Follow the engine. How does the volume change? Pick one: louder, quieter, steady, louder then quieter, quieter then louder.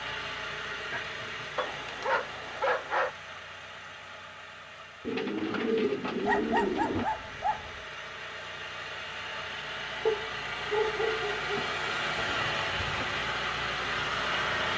quieter then louder.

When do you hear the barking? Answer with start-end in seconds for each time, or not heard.
1.6-3.1, 6.2-7.8, 10.1-11.7.